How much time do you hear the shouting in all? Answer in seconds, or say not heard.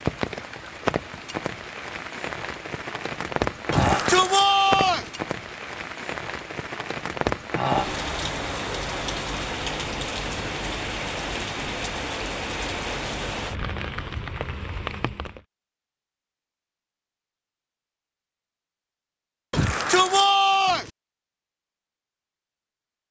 3 s.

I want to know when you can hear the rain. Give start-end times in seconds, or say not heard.
0.0-15.4.